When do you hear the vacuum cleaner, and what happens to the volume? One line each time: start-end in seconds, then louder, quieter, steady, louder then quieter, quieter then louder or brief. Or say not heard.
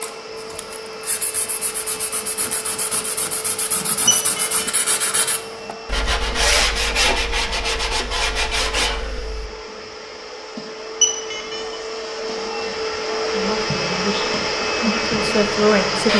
0.0-16.1 louder.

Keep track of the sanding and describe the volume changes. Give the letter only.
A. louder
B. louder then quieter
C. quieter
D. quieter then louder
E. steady
A.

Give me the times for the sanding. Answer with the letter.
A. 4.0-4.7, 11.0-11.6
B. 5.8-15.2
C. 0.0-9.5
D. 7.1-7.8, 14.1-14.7
C.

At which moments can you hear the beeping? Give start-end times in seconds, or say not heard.
4.0-4.7, 11.0-11.6.